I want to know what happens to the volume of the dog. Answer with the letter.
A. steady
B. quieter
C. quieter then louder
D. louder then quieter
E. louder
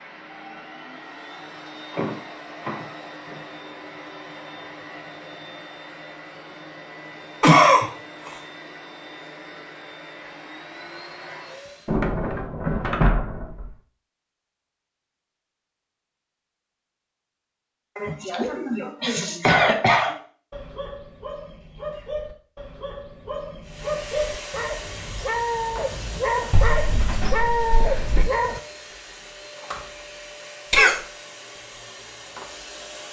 E.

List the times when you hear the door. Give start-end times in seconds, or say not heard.
1.9-3.5, 11.8-13.8, 26.5-28.3.